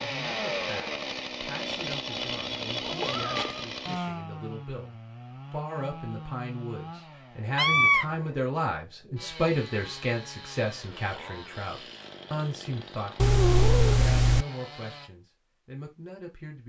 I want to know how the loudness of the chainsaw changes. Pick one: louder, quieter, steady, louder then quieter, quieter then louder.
quieter.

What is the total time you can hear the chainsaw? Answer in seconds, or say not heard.
15 s.